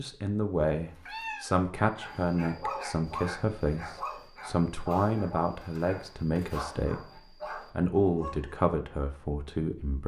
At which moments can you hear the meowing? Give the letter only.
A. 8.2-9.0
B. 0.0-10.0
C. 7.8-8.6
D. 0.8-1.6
D.